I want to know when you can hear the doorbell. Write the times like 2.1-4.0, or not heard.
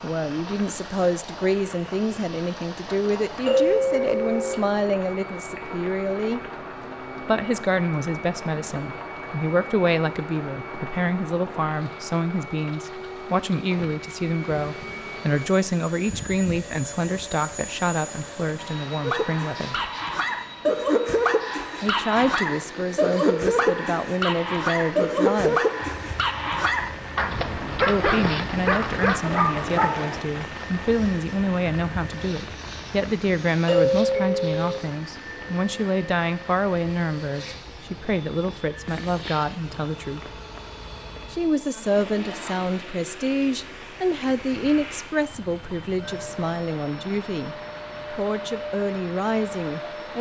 3.5-4.6, 33.6-34.8.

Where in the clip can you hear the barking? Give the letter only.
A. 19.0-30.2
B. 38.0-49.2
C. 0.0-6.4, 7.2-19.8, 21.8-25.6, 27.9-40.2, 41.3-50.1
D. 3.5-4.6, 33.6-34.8
A.